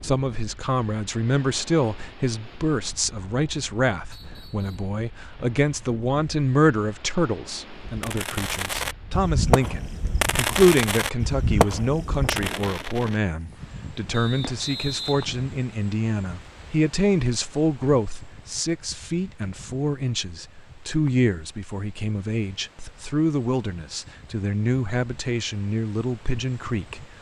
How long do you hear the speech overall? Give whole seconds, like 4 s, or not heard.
27 s.